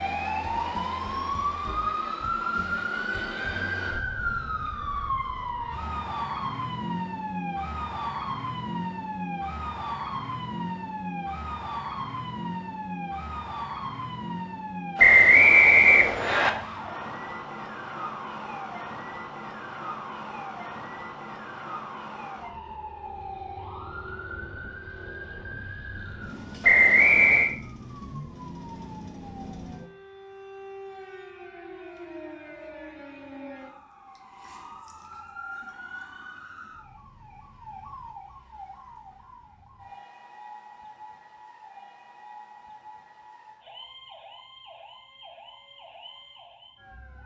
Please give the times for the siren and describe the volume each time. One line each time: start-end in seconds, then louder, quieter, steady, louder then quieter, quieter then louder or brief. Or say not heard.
0.0-47.2 quieter.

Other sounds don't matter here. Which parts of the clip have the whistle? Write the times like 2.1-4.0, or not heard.
14.9-16.5, 26.6-27.6.